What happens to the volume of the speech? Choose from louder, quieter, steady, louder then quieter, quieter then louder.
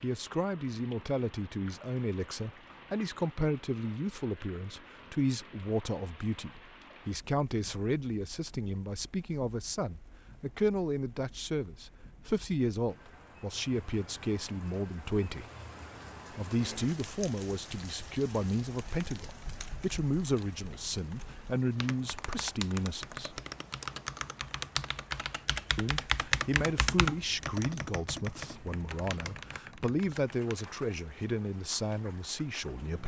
steady.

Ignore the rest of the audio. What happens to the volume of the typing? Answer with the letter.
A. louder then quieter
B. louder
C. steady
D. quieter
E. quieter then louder
A.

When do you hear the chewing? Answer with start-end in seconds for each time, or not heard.
not heard.